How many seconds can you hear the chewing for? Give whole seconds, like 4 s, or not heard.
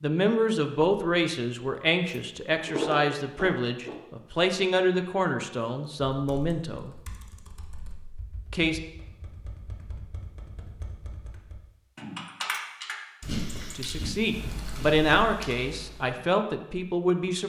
4 s.